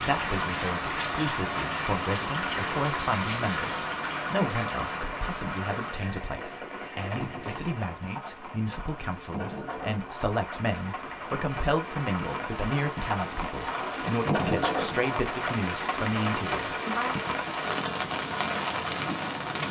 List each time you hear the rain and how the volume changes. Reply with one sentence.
You can hear the rain from 0.0 to 19.6 s, getting quieter then louder.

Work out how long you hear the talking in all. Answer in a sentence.
The talking can be heard for 17 seconds in total.